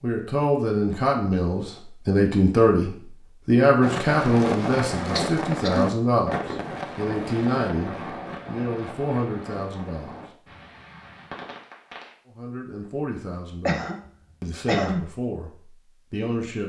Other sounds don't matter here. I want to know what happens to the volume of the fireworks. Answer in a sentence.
The loudness of the fireworks goes down.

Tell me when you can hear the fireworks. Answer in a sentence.
The fireworks can be heard from 3.8 to 12.2 s.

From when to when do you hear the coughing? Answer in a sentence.
You can hear the coughing from 5.2 to 5.9 s and from 13.7 to 15.1 s.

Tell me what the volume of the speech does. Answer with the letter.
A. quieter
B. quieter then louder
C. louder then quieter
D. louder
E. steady
A.